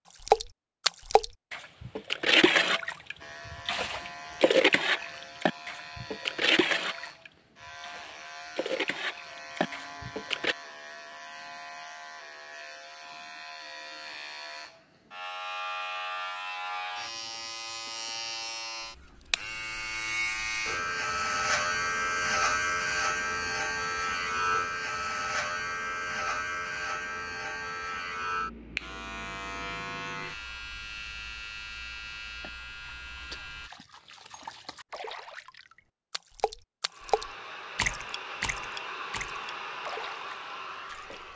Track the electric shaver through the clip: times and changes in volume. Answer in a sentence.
You can hear the electric shaver from 3.2 to 33.7 s, getting louder then quieter.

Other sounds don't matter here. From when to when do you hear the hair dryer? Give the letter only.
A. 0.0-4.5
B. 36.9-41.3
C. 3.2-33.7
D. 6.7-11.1
B.